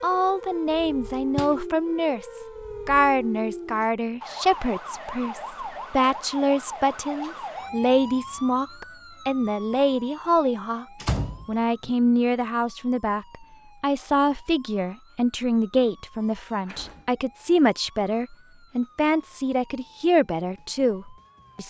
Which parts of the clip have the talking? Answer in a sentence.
You can hear the talking from 0.0 to 10.8 s and from 11.4 to 21.6 s.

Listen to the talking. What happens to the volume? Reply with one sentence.
The volume of the talking stays about the same.